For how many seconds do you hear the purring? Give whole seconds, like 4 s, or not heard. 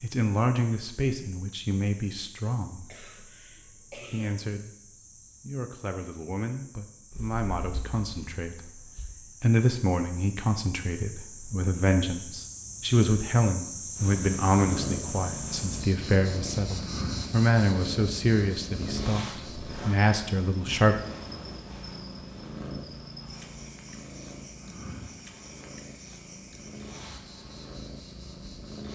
17 s.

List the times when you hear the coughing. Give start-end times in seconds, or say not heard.
2.9-4.3.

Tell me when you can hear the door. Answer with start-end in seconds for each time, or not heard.
not heard.